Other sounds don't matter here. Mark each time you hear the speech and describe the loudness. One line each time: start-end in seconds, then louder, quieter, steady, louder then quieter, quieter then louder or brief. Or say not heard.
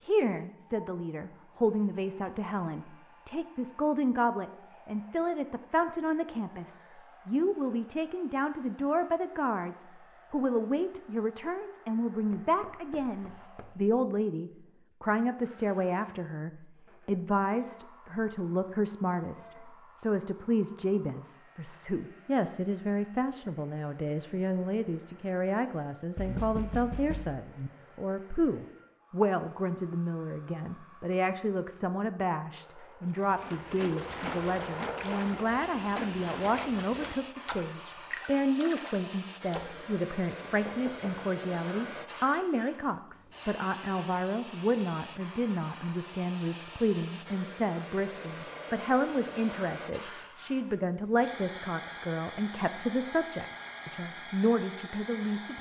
0.0-55.5 steady.